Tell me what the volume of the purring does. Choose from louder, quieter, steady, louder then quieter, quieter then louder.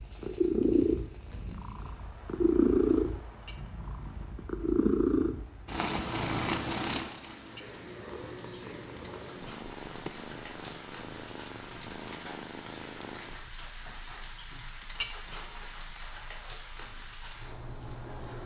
quieter.